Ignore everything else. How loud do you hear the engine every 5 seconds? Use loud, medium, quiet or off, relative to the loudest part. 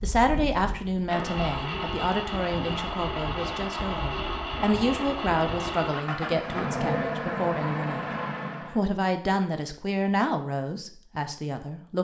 loud, loud, off.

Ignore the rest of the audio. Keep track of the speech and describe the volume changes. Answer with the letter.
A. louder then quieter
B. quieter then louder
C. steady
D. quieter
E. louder
C.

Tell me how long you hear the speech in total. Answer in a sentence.
You can hear the speech for 12 seconds altogether.